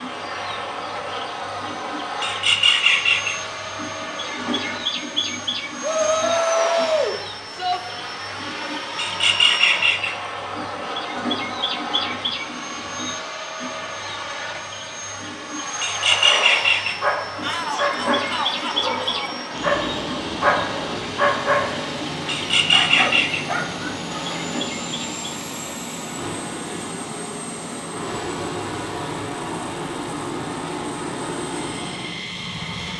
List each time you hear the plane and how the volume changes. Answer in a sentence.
You can hear the plane from 0.0 to 32.9 s, at a steady volume.